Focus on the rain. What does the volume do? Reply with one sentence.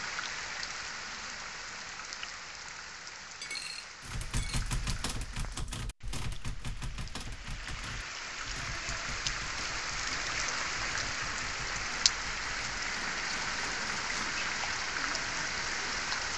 The loudness of the rain goes down, then up.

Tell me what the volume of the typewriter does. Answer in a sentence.
The loudness of the typewriter goes down.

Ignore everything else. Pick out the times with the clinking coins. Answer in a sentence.
You can hear the clinking coins from 3.4 to 4.7 s.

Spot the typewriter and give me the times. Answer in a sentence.
The typewriter can be heard from 4.0 to 14.4 s.